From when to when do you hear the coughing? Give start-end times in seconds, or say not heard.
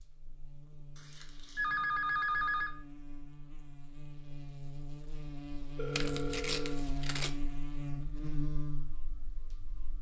not heard.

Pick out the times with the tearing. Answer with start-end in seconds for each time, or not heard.
0.9-1.7, 5.9-7.3.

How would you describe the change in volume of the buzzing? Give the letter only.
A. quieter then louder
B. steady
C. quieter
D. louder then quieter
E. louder
E.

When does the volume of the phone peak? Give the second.
2 s.